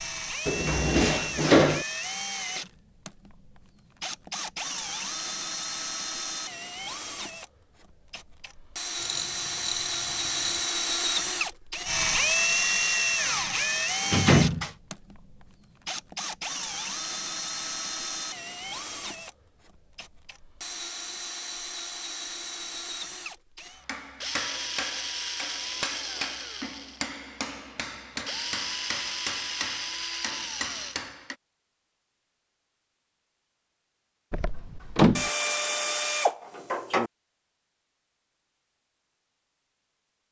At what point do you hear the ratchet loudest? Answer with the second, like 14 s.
36 s.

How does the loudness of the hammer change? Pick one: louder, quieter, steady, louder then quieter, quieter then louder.
steady.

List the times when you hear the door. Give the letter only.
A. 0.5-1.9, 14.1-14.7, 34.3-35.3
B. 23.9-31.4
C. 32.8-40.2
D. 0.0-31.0
A.